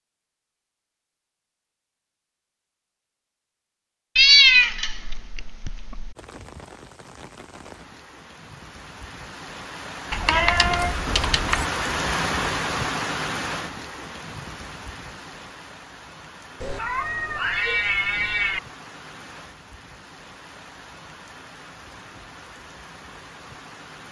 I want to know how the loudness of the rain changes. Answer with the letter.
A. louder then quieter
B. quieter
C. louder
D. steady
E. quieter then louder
A.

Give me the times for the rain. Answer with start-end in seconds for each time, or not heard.
6.2-24.0.